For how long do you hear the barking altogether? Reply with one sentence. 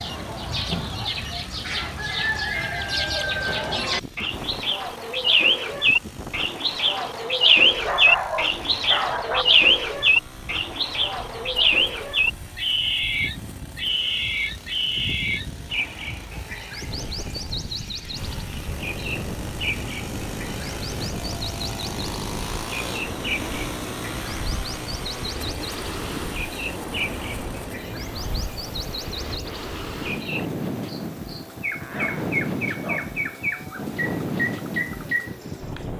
The barking can be heard for 3 seconds in total.